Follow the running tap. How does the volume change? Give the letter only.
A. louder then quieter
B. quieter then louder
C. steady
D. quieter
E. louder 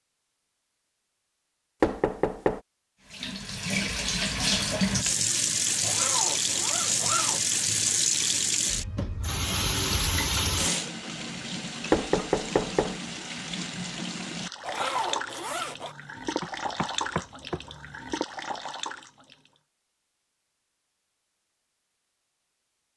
D.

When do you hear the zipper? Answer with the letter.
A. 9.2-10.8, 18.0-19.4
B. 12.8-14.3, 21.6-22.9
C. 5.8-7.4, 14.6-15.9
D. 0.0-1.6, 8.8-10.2
C.